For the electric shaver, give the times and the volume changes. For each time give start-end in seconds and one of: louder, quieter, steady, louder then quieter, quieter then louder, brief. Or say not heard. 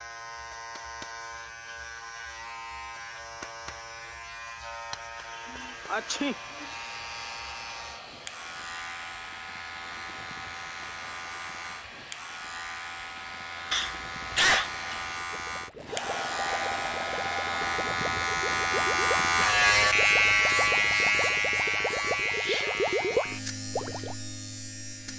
0.0-25.1 louder.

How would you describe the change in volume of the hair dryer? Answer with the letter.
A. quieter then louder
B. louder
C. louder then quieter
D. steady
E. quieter
B.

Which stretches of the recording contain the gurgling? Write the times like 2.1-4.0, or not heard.
15.3-24.1.